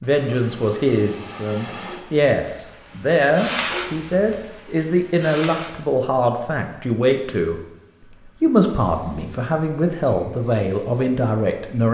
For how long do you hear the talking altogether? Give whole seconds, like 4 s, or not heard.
11 s.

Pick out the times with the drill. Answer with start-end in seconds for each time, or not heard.
not heard.